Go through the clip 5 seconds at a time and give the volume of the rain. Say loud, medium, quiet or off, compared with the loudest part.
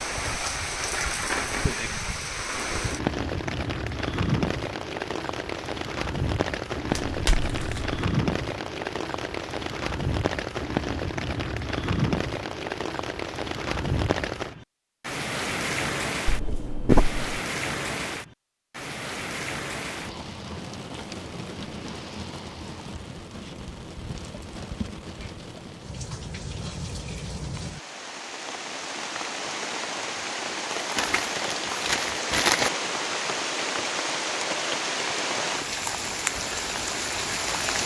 loud, loud, loud, loud, medium, medium, loud, loud.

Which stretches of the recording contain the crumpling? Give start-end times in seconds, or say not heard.
7.0-8.0, 16.2-17.4, 30.8-32.7.